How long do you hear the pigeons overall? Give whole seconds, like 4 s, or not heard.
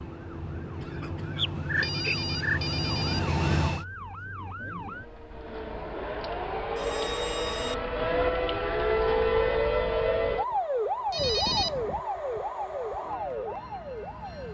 not heard.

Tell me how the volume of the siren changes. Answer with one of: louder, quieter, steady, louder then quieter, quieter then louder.
louder then quieter.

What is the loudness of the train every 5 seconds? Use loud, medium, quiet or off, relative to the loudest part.
loud, off, medium.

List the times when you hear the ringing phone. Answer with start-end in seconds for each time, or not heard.
1.4-3.2, 6.8-7.8, 11.1-11.8.